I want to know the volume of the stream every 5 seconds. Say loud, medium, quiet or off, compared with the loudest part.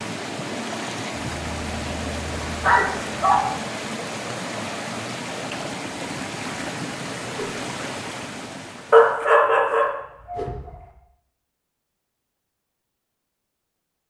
loud, loud, off.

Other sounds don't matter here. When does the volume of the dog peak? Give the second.
9 s.